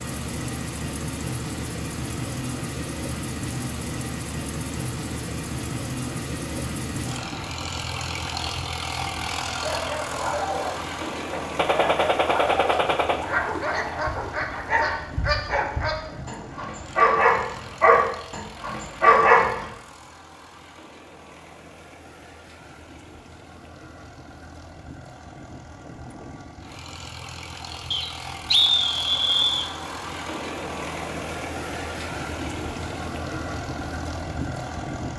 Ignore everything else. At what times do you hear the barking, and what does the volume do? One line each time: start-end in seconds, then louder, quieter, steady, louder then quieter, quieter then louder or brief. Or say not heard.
9.6-19.6 louder.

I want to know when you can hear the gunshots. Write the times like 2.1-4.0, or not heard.
11.6-13.2.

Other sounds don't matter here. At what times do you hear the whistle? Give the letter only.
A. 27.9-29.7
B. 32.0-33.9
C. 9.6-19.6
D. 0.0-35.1
A.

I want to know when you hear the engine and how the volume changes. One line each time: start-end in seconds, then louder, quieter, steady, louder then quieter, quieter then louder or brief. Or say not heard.
0.0-35.1 quieter then louder.